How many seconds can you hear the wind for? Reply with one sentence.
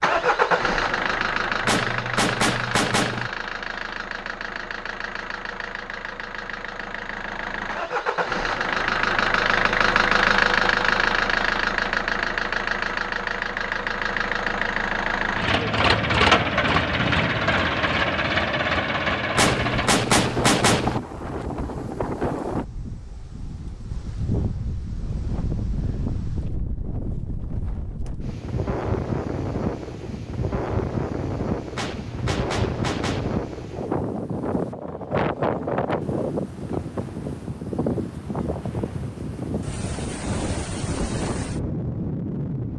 You can hear the wind for 23 seconds altogether.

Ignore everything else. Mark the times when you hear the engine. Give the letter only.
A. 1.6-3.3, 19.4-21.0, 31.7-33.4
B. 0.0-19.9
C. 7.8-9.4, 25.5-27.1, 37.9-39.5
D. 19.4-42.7
B.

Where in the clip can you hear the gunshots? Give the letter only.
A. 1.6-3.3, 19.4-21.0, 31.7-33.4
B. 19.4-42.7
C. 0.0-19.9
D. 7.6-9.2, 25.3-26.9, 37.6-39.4
A.